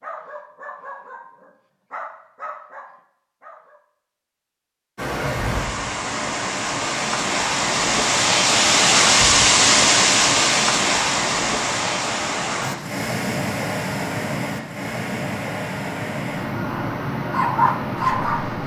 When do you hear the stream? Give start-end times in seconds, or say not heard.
5.0-18.6.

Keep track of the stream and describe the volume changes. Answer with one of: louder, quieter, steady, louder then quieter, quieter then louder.
louder then quieter.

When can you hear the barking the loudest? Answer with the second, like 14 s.
18 s.